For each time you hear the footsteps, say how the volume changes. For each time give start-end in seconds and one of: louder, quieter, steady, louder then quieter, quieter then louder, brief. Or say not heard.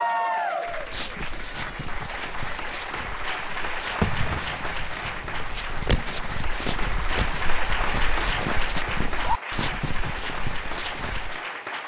0.7-11.4 louder.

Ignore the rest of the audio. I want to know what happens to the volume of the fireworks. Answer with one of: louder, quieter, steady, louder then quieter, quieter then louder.
louder.